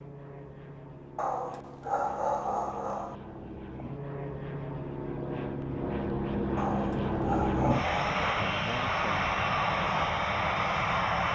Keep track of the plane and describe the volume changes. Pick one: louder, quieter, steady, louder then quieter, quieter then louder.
louder.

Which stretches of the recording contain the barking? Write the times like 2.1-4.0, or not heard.
1.1-3.1, 6.5-8.4.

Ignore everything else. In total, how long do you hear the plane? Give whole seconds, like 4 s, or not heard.
11 s.